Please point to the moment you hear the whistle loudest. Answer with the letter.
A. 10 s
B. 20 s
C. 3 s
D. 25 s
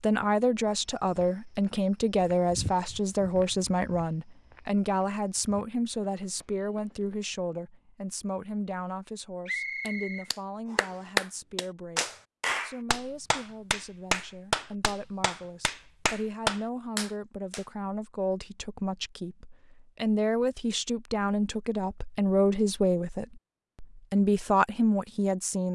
A.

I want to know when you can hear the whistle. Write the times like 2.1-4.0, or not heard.
9.4-11.1.